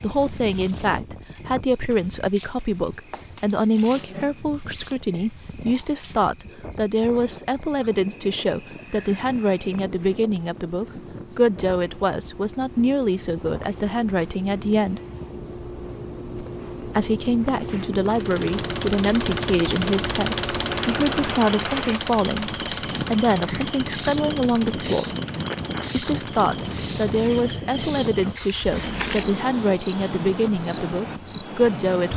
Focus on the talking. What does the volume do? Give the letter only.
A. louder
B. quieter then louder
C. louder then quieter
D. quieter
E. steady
E.